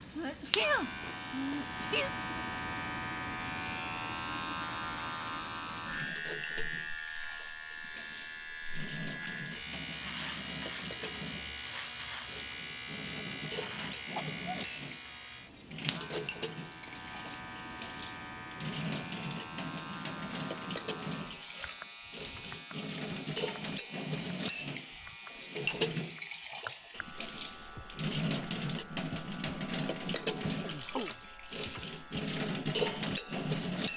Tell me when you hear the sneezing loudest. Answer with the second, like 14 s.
1 s.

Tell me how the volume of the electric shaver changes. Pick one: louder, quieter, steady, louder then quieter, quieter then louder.
quieter.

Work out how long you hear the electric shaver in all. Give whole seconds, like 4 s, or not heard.
34 s.